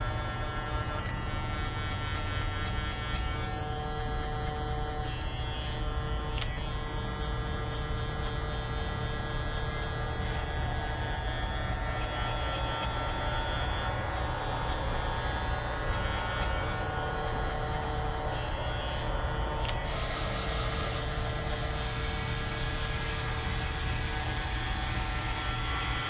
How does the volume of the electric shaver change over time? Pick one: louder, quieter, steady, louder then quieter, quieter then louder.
steady.